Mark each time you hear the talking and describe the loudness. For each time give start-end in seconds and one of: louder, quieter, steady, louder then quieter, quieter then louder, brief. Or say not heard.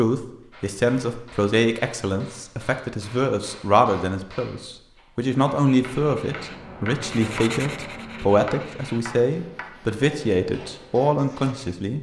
0.0-11.9 steady.